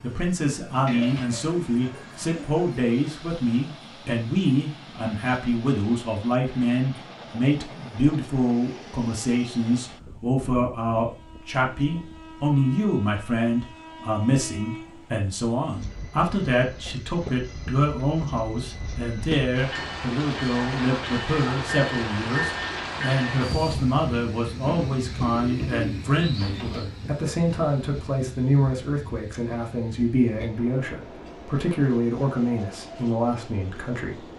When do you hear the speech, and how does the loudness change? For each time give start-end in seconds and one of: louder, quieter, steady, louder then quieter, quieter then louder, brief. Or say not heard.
0.0-34.2 steady.